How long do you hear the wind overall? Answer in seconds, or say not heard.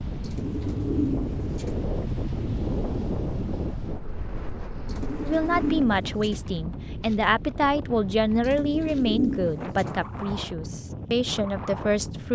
12 s.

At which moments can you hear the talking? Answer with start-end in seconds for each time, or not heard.
5.2-12.3.